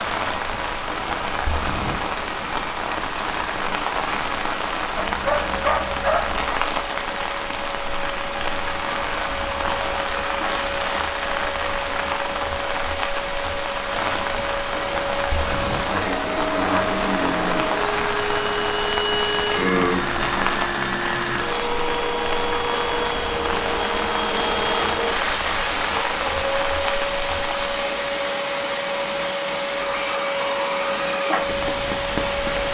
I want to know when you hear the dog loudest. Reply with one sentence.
The volume of the dog peaks at 6 seconds.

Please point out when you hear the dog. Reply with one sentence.
You can hear the dog from 5.0 to 6.5 s.